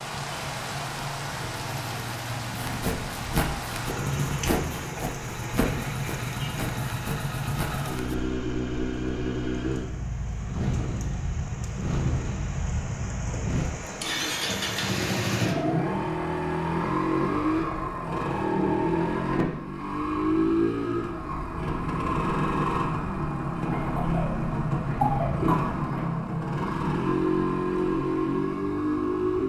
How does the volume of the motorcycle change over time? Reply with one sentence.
The volume of the motorcycle goes up.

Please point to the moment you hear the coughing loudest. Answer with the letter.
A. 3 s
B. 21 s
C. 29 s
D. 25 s
D.